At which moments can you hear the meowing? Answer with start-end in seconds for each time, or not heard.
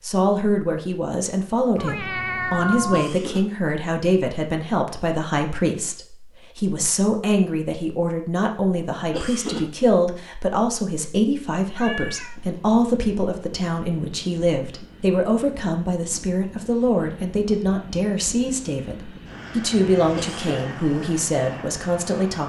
1.8-3.1, 11.8-12.3, 19.7-20.3.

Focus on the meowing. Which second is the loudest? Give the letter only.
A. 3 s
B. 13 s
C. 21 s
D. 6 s
A.